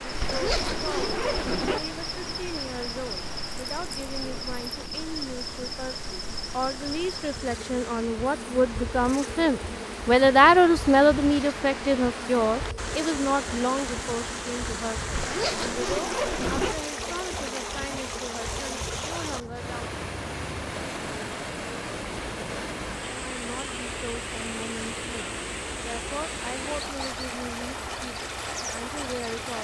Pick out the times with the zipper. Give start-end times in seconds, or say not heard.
0.2-1.8, 15.2-16.8.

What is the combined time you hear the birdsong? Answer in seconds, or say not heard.
not heard.